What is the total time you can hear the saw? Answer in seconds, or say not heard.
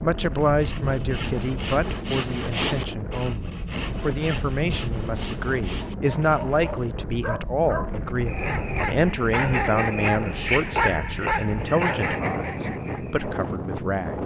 7 s.